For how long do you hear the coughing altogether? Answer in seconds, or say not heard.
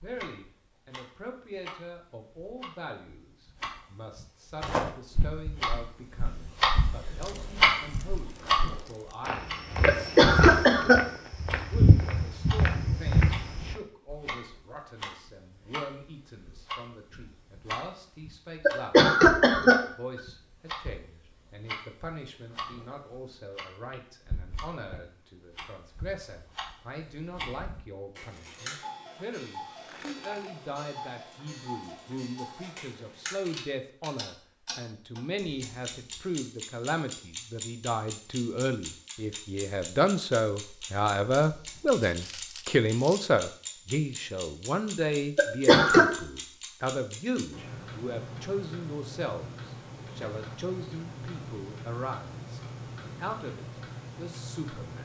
3 s.